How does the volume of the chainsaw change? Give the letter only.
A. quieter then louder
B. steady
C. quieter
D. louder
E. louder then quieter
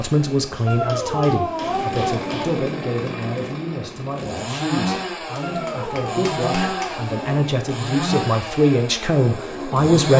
D.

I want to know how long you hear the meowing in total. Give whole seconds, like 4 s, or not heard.
4 s.